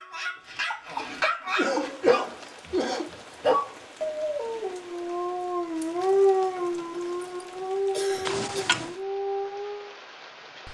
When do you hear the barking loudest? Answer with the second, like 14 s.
6 s.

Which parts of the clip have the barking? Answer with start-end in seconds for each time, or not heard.
0.0-9.9.